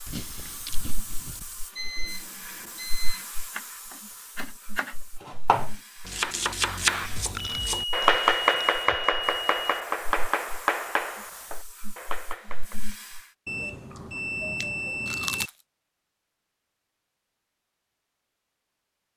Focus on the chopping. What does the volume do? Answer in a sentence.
The loudness of the chopping goes up, then down.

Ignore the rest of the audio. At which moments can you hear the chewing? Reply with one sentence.
You can hear the chewing from 0.1 to 1.6 s, from 7.3 to 8.7 s and from 13.9 to 15.5 s.